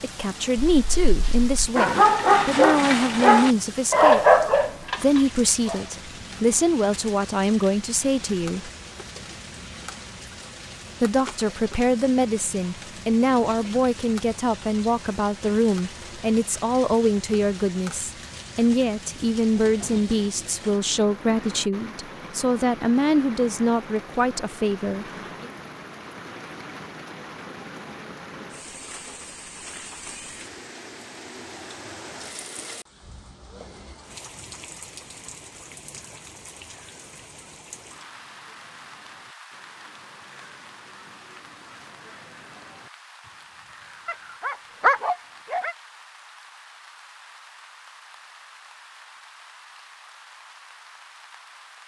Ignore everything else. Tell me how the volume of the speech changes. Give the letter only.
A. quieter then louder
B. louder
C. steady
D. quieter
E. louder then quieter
C.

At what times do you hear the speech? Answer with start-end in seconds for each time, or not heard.
0.0-8.7, 11.0-25.5.